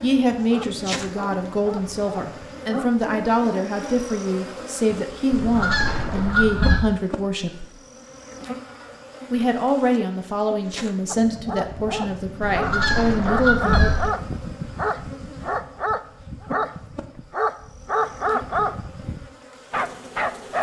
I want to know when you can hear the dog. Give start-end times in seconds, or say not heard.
0.0-3.2, 11.1-20.5.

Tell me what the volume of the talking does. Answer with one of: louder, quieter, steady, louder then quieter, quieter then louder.
steady.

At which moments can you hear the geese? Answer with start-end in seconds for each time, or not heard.
5.3-6.8, 12.4-14.1.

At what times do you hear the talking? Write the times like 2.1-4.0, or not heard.
0.0-7.7, 9.3-14.2.